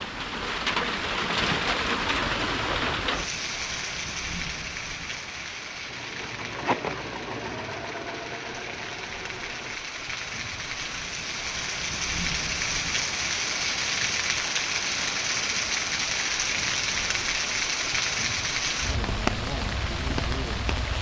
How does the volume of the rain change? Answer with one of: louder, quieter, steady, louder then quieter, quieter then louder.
quieter then louder.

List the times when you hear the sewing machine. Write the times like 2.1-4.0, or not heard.
5.8-9.8.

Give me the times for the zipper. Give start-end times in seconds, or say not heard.
6.2-7.0.